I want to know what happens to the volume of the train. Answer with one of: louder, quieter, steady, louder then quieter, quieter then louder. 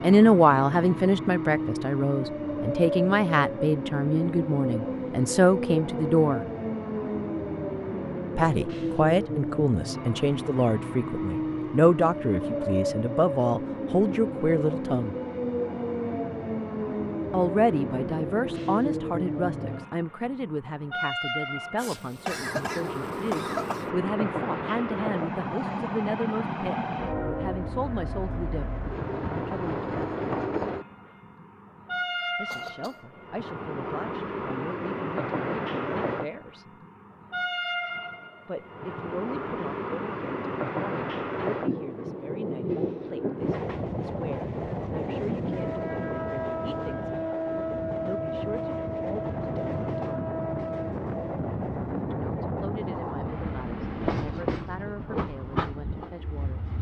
steady.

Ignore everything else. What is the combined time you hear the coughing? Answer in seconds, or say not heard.
3 s.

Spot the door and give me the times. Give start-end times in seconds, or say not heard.
not heard.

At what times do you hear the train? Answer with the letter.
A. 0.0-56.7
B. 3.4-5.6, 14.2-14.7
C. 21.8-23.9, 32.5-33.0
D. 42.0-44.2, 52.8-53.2
A.